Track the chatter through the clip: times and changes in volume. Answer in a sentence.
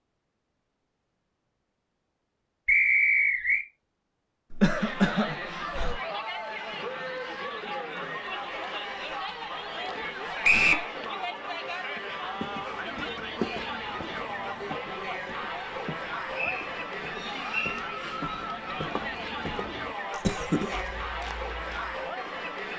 The chatter can be heard from 4.7 to 22.7 s, at a steady volume.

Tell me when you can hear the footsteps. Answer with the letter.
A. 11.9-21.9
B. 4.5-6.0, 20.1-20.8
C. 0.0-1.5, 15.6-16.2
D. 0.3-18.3
A.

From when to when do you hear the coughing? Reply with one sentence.
The coughing can be heard from 4.5 to 6.0 s and from 20.1 to 20.8 s.